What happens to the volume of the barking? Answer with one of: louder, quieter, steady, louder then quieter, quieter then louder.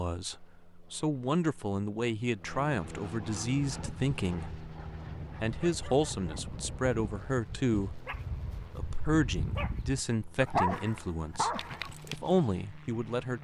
louder.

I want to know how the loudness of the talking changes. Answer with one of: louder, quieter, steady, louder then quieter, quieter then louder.
steady.